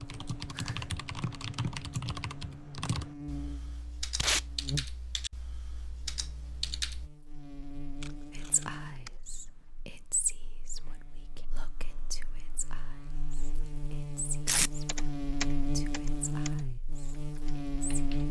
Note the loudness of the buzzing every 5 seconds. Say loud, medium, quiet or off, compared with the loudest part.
medium, quiet, medium, loud.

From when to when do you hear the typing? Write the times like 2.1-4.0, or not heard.
0.0-7.1, 14.8-18.2.